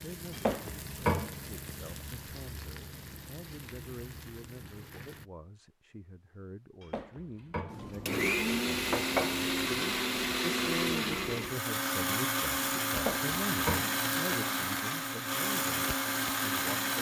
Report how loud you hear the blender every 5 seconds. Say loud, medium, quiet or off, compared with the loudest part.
off, loud, loud, loud.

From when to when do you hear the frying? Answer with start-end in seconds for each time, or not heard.
0.0-5.3.